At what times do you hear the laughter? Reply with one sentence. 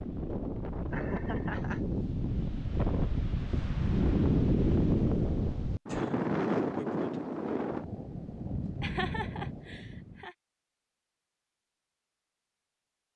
You can hear the laughter from 0.9 to 1.8 s and from 8.8 to 10.3 s.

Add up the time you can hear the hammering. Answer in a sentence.
You can't hear the hammering here.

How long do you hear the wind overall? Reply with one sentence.
The wind can be heard for 10 seconds in total.